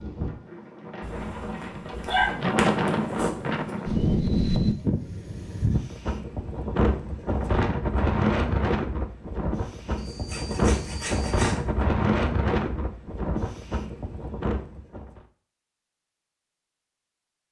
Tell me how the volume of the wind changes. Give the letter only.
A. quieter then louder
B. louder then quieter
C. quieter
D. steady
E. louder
D.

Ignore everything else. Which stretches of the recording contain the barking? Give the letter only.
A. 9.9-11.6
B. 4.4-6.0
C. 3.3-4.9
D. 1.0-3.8
D.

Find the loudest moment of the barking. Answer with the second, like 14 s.
2 s.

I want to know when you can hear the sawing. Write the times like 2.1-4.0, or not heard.
9.9-11.6.